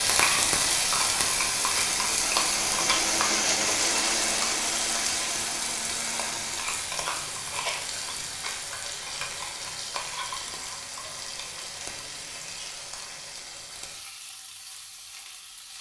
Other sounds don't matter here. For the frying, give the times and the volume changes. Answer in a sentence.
You can hear the frying from 0.0 to 15.7 s, getting quieter.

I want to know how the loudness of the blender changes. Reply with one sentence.
The loudness of the blender goes up, then down.